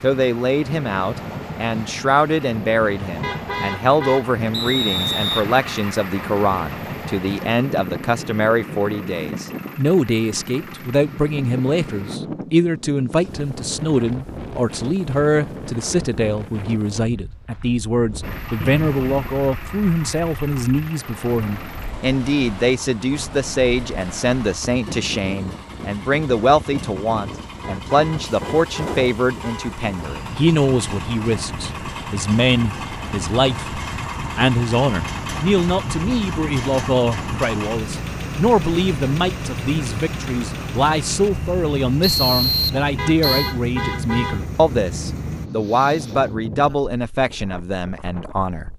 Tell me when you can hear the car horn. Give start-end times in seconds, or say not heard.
3.2-4.2, 27.6-29.8, 43.0-44.5.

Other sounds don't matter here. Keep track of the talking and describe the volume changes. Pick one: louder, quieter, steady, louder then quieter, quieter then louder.
steady.